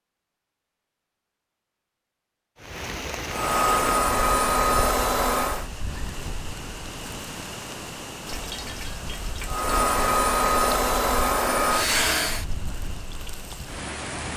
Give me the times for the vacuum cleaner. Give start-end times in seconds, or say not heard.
3.3-5.7, 9.4-12.4.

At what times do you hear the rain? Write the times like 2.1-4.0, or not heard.
2.5-14.3.